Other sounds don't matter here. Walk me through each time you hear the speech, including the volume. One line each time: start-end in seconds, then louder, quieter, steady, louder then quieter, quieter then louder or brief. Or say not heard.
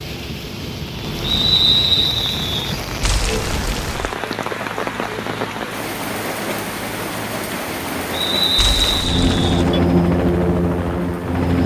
not heard.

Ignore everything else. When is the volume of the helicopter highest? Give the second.
10 s.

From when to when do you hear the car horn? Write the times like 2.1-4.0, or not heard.
3.0-4.2, 8.6-9.8.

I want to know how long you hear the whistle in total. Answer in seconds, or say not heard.
3 s.